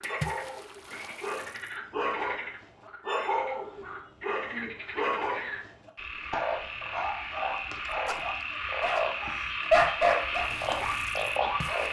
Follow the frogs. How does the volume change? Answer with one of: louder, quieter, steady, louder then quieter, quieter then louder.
louder.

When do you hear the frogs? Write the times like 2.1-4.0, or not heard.
0.0-11.8.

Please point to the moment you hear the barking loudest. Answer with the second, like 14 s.
10 s.